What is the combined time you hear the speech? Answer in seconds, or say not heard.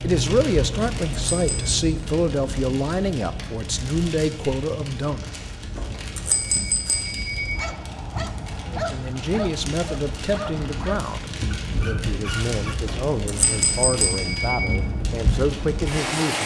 13 s.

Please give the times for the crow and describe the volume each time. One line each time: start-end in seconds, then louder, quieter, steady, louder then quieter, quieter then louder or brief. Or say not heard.
not heard.